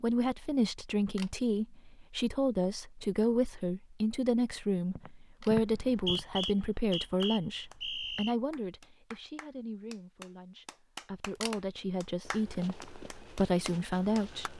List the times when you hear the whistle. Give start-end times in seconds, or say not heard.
5.7-8.3.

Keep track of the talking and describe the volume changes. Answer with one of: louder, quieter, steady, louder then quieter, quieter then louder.
quieter then louder.